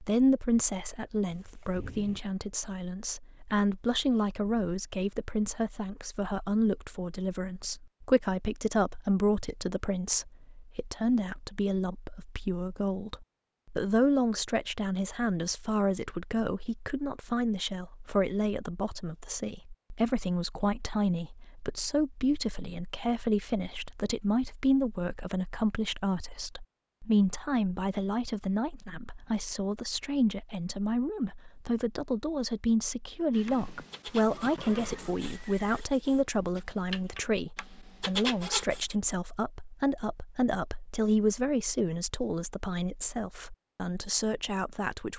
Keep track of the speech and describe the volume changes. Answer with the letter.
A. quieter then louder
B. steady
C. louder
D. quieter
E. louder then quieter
B.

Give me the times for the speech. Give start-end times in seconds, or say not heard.
0.0-45.1.